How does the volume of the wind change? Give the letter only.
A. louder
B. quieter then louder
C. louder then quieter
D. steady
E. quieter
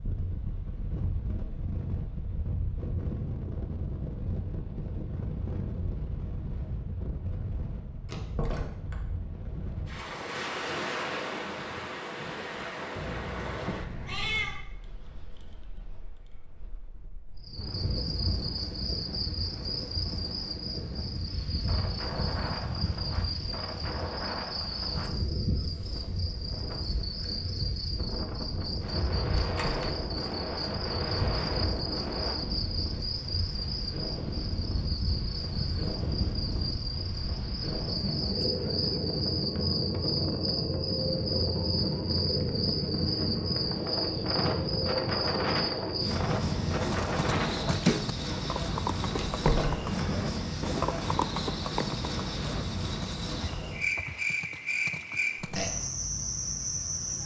A.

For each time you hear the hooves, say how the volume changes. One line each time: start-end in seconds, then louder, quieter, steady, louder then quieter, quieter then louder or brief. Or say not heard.
46.9-56.0 quieter.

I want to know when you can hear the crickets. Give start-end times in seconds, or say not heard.
17.4-57.2.